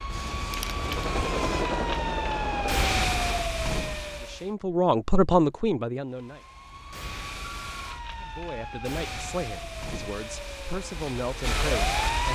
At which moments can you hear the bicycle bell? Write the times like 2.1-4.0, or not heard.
not heard.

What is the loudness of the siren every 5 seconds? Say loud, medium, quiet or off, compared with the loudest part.
loud, medium, loud.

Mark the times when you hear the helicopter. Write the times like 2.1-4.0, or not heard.
0.0-3.5.